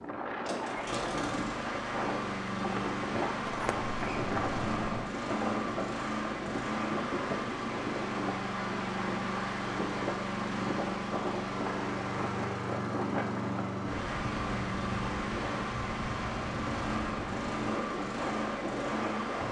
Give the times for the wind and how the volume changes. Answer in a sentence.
The wind can be heard from 0.0 to 19.4 s, at a steady volume.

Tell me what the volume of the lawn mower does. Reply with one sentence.
The loudness of the lawn mower stays about the same.